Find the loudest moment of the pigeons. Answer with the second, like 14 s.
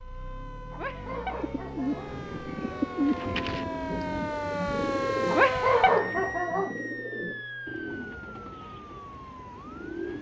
3 s.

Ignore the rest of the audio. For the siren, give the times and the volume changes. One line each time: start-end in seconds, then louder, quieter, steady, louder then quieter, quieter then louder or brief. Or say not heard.
0.0-10.1 louder then quieter.